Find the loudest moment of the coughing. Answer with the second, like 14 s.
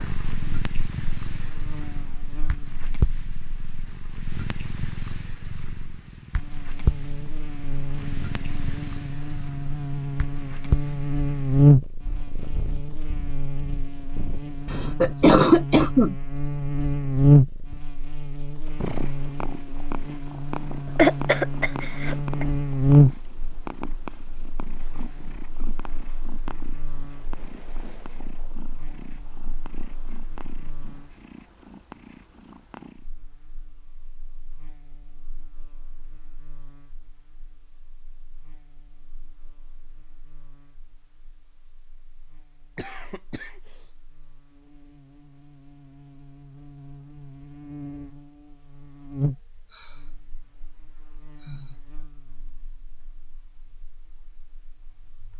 15 s.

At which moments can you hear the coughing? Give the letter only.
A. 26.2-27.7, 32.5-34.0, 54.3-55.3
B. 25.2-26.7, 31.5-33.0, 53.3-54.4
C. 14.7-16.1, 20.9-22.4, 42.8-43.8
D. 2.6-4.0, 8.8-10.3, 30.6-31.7
C.